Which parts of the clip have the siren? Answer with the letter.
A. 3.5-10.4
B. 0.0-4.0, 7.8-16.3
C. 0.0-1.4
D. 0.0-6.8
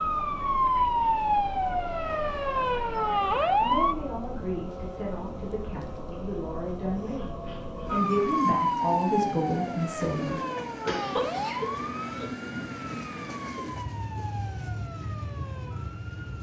B.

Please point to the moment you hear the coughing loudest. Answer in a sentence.
The volume of the coughing peaks at 11 seconds.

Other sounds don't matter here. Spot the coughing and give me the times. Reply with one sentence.
The coughing can be heard from 10.8 to 12.3 s.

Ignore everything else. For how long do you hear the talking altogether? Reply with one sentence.
You can hear the talking for 7 seconds altogether.